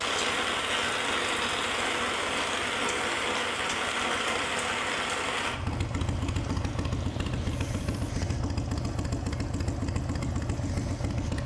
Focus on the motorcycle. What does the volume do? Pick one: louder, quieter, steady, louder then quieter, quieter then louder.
louder.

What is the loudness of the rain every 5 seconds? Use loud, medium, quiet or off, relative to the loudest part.
loud, medium, off.